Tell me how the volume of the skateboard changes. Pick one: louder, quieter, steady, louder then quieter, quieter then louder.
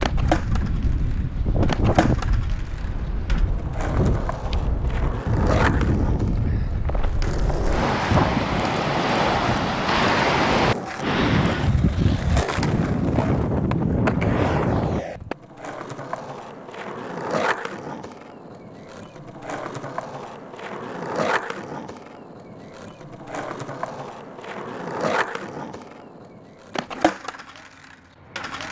steady.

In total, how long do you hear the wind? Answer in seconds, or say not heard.
15 s.